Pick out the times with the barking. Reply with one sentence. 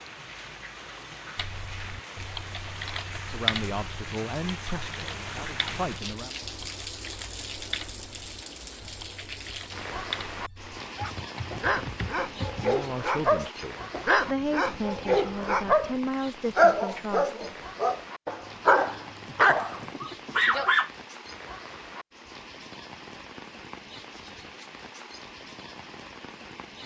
The barking can be heard from 10.9 to 20.9 s.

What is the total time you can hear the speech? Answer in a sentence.
The speech can be heard for 8 seconds in total.